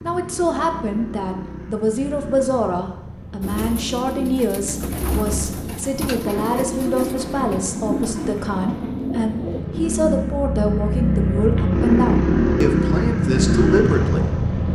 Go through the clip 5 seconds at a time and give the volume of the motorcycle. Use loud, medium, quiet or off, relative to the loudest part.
quiet, quiet, loud.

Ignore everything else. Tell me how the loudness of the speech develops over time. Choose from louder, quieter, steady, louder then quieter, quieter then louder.
steady.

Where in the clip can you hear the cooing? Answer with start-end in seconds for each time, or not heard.
3.4-9.7.